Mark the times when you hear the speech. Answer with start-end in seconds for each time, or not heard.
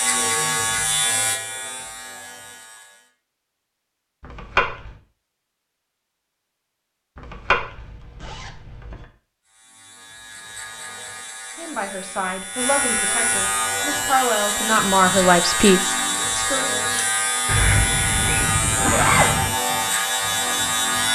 11.6-16.8.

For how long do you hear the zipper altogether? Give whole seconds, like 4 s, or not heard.
5 s.